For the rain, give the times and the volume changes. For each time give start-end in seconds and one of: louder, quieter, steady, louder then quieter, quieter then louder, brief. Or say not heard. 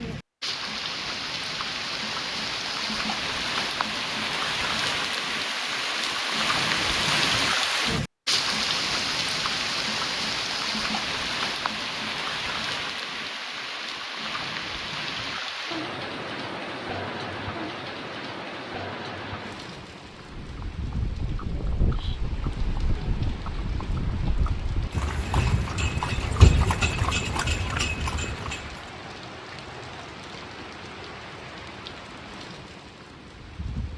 0.0-33.9 quieter.